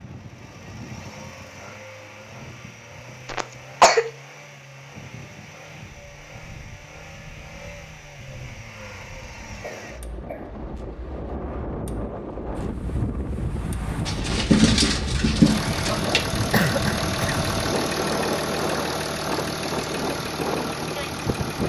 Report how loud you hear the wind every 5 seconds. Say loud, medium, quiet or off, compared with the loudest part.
quiet, quiet, loud, loud, loud.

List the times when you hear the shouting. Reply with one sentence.
The shouting can't be heard in this clip.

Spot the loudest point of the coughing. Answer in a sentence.
The loudest moment of the coughing is at 4 seconds.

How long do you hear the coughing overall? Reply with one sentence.
The coughing can be heard for 3 seconds in total.